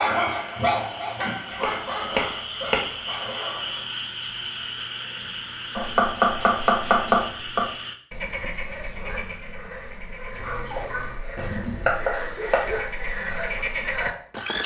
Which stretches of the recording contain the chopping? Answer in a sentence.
The chopping can be heard from 1.6 to 2.9 s, from 5.8 to 7.7 s and from 10.8 to 12.7 s.